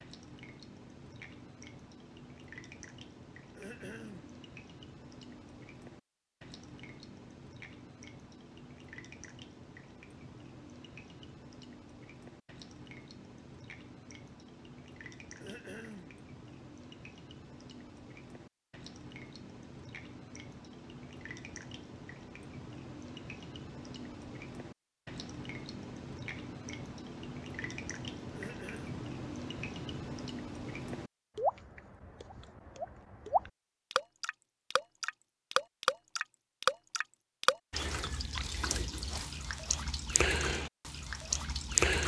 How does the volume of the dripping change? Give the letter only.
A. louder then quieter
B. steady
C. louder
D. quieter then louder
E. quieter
C.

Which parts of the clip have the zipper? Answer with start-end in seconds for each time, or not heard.
not heard.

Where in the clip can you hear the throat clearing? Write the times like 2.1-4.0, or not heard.
3.5-4.4, 15.3-16.2, 28.3-28.9.